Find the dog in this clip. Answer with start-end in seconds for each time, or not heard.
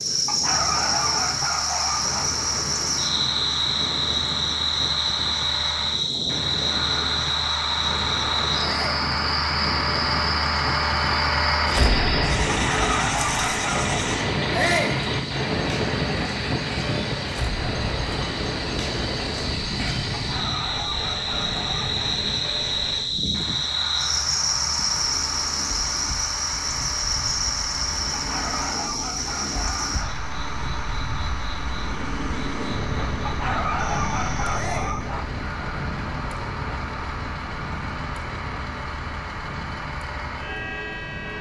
0.2-2.3, 12.6-14.0, 20.1-22.1, 28.2-30.1, 33.2-35.2.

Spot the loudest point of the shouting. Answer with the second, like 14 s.
15 s.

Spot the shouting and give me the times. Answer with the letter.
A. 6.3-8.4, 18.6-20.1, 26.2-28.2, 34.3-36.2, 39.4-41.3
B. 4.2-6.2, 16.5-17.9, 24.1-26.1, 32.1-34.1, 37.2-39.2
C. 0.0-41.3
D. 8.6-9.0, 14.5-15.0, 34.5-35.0
D.